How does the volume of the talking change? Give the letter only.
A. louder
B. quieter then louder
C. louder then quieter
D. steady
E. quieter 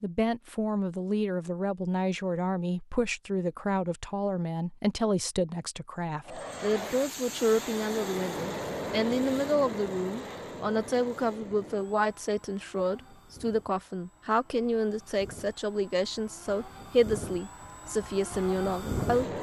D.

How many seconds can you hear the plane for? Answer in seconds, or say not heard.
13 s.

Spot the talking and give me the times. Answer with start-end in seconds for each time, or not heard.
0.0-19.3.